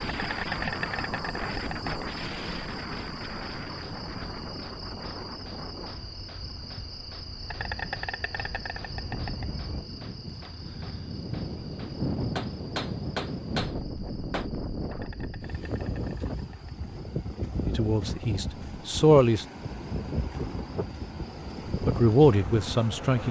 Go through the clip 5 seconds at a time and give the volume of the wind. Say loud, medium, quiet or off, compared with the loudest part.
loud, medium, loud, loud, loud.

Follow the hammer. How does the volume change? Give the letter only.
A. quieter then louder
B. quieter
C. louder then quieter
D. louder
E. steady
D.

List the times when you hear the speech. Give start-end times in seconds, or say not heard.
17.6-19.4, 21.8-23.2.